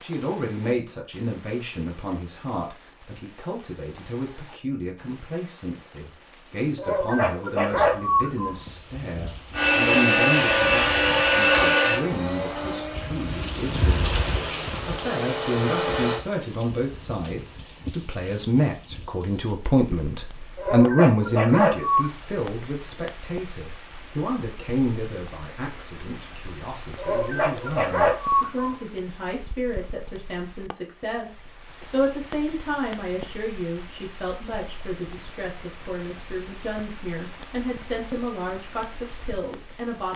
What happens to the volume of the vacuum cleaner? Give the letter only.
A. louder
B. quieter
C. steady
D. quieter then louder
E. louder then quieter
B.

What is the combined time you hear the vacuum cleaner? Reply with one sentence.
You can hear the vacuum cleaner for 7 seconds altogether.